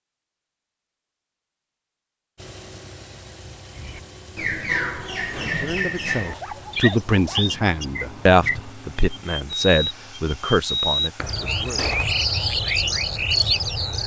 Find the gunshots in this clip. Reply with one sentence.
The gunshots can be heard from 11.8 to 12.2 s.